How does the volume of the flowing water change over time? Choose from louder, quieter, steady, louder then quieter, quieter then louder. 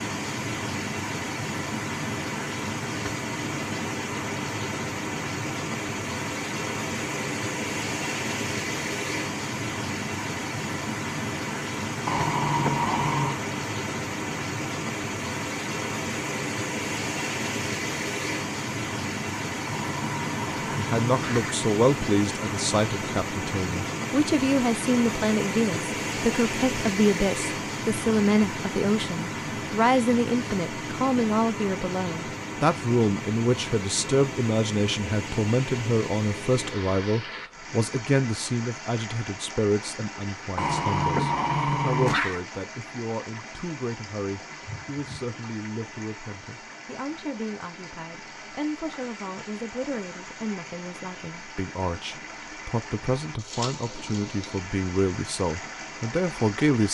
quieter.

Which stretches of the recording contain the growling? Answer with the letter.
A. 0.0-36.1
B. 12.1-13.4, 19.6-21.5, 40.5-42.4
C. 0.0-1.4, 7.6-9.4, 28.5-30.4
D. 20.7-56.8
B.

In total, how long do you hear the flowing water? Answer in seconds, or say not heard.
57 s.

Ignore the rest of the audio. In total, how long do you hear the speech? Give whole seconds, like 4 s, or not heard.
36 s.